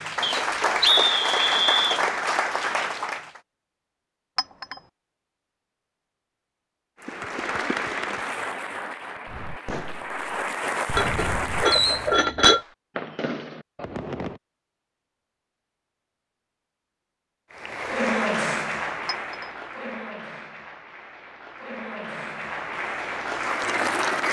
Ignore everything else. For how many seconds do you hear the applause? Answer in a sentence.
You can hear the applause for 15 seconds altogether.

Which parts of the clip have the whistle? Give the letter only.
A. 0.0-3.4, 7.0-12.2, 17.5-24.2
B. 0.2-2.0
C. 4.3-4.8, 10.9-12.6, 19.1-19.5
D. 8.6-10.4
B.